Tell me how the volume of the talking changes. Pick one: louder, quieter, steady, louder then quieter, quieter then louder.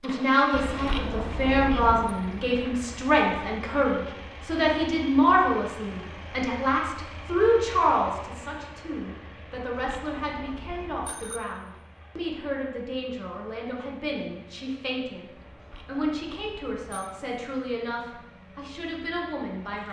quieter.